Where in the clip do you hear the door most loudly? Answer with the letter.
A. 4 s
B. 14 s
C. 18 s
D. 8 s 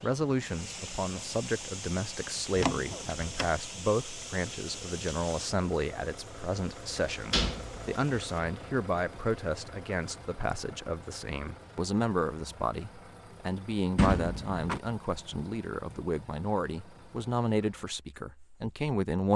B.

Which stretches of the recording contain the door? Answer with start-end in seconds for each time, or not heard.
2.5-3.5, 7.1-8.4, 13.9-14.8.